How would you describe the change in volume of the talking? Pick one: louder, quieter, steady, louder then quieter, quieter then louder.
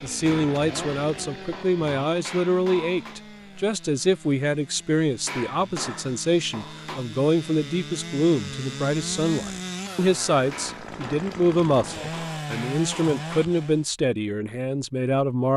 steady.